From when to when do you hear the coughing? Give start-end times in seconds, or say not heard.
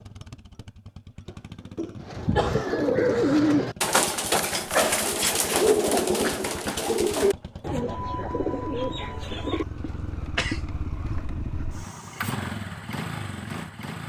1.2-2.9, 6.2-6.8, 9.8-10.7.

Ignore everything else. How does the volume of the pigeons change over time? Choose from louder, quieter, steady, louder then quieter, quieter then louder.
quieter.